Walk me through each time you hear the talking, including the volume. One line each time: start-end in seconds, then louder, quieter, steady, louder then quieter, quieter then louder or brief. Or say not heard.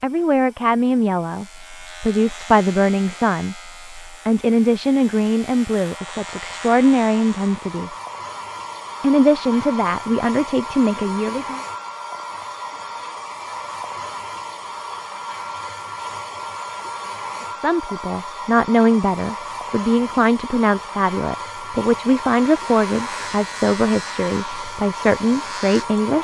0.0-7.9 steady
9.0-11.6 brief
17.6-26.2 steady.